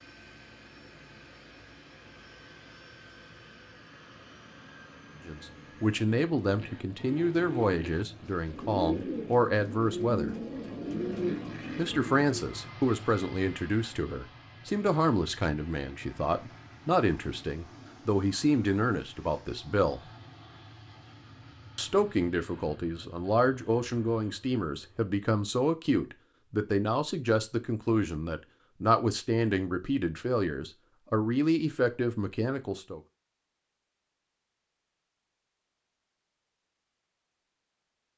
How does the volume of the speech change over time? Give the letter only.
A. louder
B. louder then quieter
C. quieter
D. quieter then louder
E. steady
E.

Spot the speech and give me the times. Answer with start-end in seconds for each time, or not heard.
5.2-10.3, 11.8-20.1, 21.8-33.0.